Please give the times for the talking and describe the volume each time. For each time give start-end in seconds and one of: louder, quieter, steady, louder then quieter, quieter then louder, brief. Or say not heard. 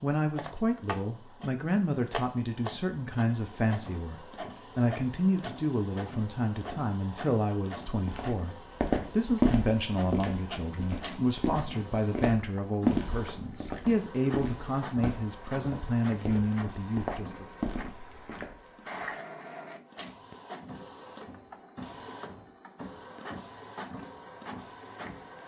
0.0-17.4 steady.